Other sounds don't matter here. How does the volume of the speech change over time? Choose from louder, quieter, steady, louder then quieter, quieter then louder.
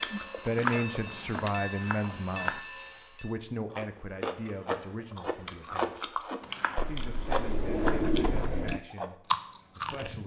quieter.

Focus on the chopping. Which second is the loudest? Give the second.
1 s.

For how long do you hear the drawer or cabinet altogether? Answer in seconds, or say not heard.
2 s.